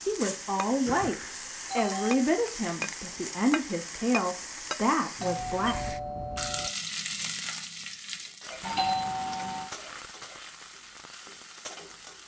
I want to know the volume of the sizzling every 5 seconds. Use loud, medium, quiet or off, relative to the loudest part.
loud, loud, medium.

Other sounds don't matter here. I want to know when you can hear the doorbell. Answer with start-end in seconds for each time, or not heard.
0.8-2.2, 5.2-6.7, 8.6-9.7.